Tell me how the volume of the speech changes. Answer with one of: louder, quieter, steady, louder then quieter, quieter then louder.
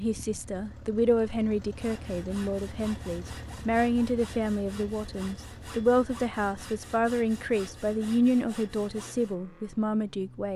steady.